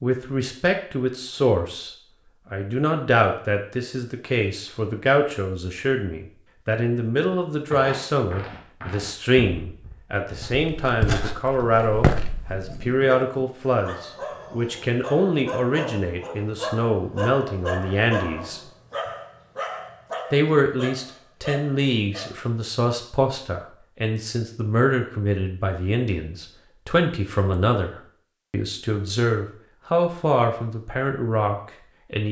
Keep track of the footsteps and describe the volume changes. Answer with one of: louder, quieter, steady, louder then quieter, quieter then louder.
quieter then louder.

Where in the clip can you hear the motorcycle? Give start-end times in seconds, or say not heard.
not heard.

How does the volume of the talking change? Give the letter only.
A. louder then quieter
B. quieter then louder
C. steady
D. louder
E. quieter
C.